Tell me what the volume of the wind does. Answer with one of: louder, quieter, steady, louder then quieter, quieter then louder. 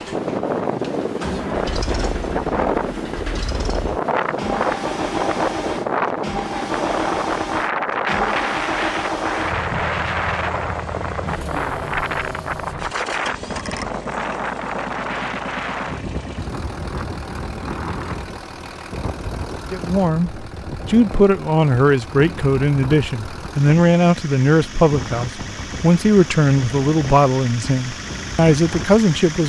quieter.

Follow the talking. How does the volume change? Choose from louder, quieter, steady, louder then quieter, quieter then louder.
steady.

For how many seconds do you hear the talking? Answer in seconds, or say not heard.
10 s.